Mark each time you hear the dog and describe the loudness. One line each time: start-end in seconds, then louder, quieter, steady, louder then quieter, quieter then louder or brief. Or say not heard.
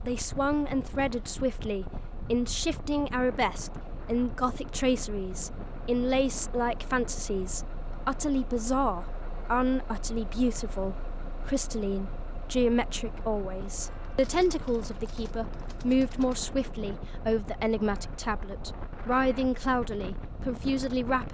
not heard.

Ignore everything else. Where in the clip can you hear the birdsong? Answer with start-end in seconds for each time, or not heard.
not heard.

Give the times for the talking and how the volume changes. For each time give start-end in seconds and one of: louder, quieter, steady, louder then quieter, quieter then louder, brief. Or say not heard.
0.1-21.2 steady.